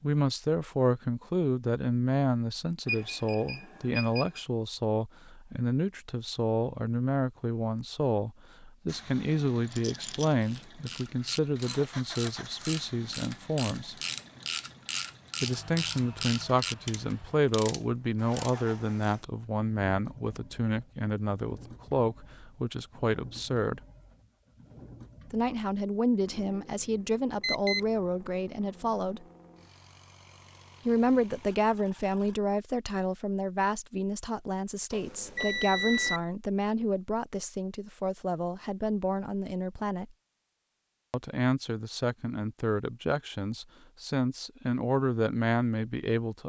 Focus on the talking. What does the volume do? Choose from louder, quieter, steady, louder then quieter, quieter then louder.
steady.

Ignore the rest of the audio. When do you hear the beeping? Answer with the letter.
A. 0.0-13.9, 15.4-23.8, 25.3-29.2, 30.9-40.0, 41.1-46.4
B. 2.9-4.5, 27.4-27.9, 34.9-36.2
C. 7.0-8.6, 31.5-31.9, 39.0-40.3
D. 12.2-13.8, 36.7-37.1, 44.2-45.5
B.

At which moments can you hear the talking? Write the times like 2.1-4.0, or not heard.
0.0-13.9, 15.4-23.8, 25.3-29.2, 30.9-40.0, 41.1-46.4.